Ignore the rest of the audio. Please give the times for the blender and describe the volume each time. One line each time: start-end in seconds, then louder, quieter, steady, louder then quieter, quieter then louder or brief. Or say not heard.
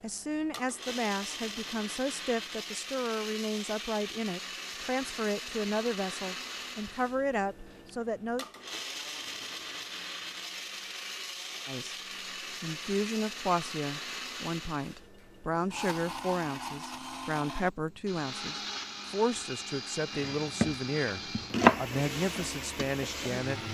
0.0-23.7 steady.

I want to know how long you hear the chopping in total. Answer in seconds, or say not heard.
2 s.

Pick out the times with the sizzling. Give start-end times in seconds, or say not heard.
21.9-23.7.